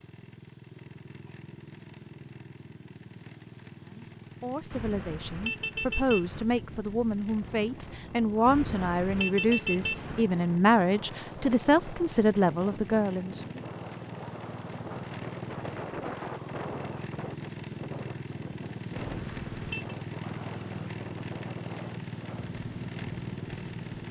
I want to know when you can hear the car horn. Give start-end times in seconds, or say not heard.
4.7-6.5, 8.4-10.2, 19.0-19.9.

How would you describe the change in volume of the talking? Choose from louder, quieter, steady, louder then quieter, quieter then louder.
louder.